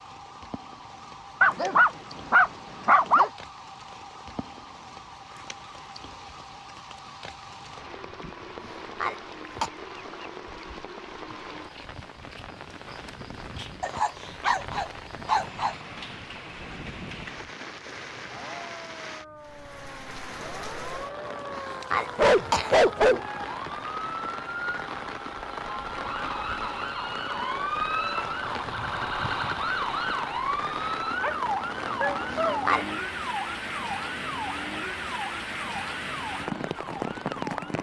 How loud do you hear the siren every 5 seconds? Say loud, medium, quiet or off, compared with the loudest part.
quiet, quiet, quiet, quiet, medium, loud, loud, medium.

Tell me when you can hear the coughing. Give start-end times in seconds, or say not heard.
8.6-9.7, 21.5-22.8, 32.2-32.9.